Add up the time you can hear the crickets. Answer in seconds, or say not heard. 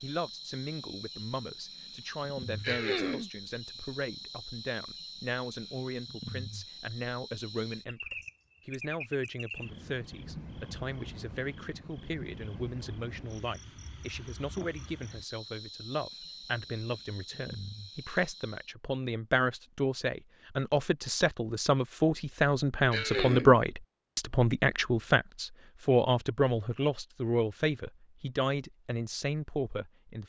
19 s.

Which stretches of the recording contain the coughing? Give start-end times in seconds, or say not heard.
2.6-3.3, 22.9-23.6.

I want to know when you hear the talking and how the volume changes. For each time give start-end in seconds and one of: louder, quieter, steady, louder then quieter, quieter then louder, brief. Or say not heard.
0.0-30.2 louder.